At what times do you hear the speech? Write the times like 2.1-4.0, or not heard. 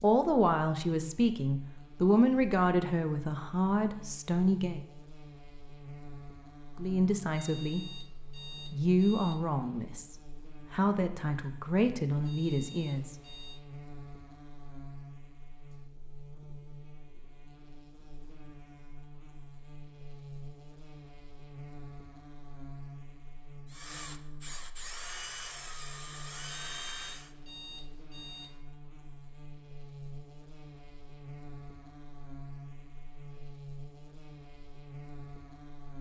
0.0-4.8, 6.8-13.3.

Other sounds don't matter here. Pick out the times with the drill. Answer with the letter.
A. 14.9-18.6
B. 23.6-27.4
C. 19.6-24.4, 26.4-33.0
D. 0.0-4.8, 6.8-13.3
B.